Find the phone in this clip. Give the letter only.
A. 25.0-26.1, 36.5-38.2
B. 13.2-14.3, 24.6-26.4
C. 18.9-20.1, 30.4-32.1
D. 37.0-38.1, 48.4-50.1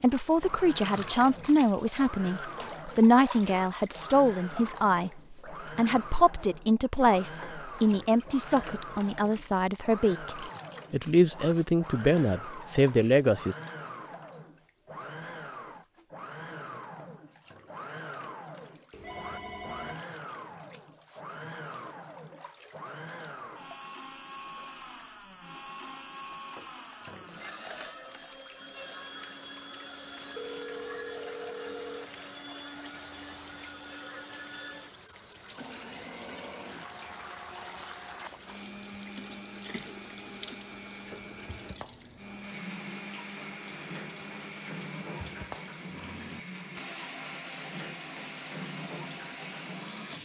C.